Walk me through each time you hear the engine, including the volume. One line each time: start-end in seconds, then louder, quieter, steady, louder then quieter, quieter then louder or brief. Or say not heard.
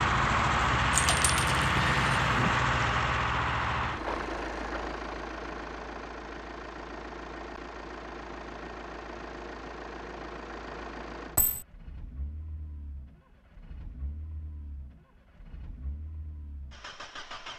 0.0-17.5 quieter.